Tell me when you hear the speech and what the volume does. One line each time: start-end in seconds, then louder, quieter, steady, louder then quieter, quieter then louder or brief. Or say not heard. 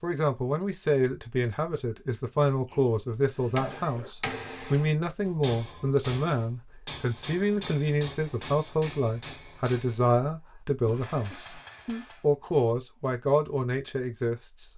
0.0-14.7 steady.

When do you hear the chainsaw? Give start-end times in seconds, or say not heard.
not heard.